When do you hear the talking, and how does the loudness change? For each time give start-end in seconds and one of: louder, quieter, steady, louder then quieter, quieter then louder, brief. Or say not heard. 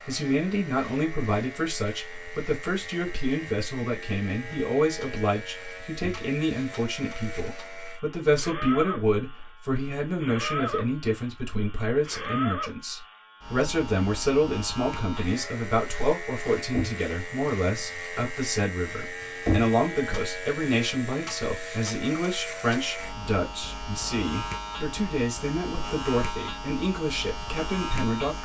0.1-28.4 steady.